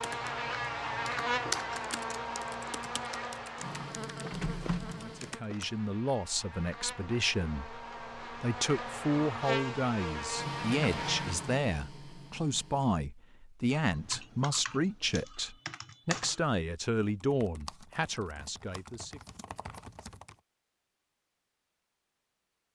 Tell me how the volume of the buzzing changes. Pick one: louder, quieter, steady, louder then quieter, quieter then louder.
quieter then louder.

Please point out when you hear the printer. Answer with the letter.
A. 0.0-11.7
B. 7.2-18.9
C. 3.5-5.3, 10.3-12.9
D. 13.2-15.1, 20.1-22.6
C.